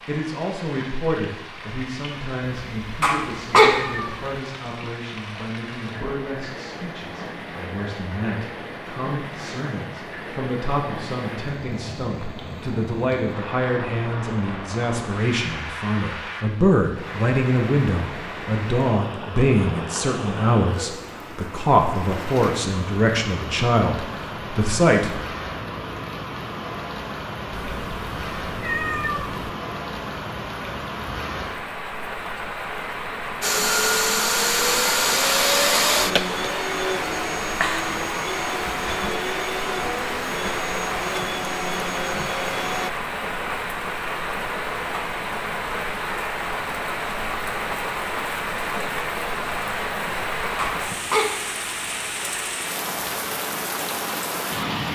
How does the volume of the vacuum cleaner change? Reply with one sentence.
The volume of the vacuum cleaner goes down.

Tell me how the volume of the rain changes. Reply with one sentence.
The loudness of the rain goes up.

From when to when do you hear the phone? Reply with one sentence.
You can't hear the phone here.